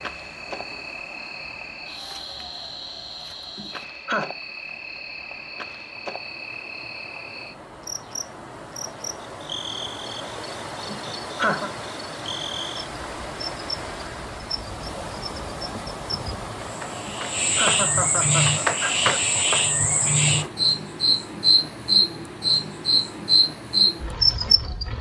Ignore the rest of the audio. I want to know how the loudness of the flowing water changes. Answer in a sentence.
The volume of the flowing water goes up.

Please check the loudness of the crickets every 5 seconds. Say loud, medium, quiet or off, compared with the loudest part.
quiet, quiet, quiet, loud, loud.